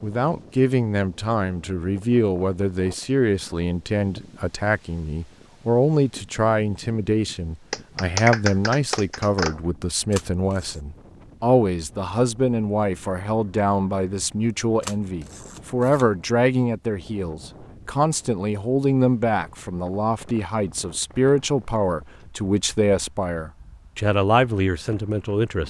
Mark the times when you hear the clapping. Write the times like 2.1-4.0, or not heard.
7.7-9.6.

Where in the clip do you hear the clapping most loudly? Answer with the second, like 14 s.
8 s.